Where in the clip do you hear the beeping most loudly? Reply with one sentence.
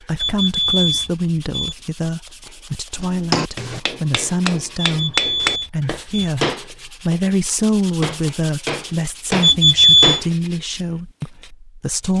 The loudest moment of the beeping is at 10 seconds.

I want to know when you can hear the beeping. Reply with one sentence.
The beeping can be heard from 0.1 to 1.8 s, from 4.9 to 6.3 s and from 9.4 to 10.2 s.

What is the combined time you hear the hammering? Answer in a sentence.
The hammering can be heard for 7 seconds in total.